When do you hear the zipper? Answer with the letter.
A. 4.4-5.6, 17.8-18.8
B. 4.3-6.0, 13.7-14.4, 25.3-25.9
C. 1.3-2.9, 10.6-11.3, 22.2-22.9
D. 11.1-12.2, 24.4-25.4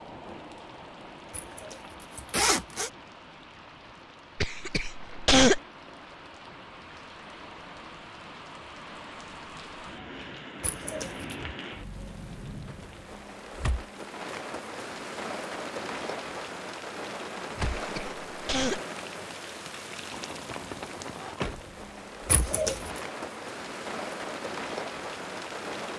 C.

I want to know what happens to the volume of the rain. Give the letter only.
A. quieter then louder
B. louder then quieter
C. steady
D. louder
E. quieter
D.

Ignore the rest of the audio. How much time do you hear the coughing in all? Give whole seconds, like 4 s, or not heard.
2 s.